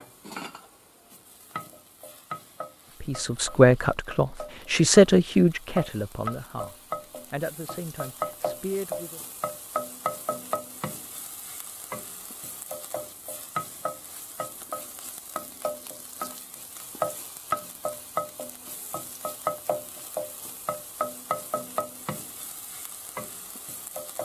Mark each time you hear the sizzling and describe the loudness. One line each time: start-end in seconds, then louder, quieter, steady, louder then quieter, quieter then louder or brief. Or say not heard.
0.0-24.2 louder.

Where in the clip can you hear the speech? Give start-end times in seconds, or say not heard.
3.0-9.2.